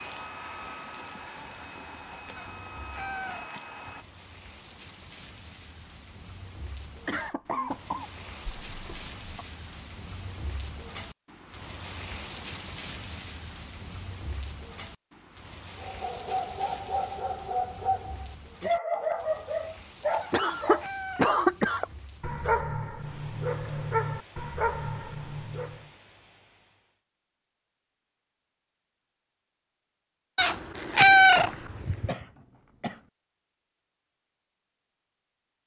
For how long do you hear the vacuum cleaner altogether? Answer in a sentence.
You can hear the vacuum cleaner for 4 seconds altogether.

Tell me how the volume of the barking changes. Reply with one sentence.
The loudness of the barking stays about the same.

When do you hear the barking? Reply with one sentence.
You can hear the barking from 15.8 to 25.9 s.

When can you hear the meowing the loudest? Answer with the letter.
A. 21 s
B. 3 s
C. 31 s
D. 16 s
C.